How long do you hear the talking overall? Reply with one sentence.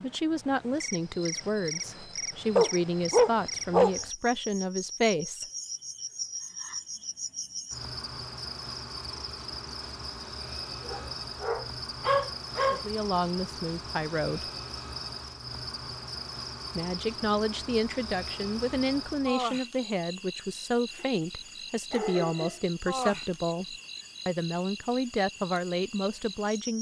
The talking can be heard for 17 seconds in total.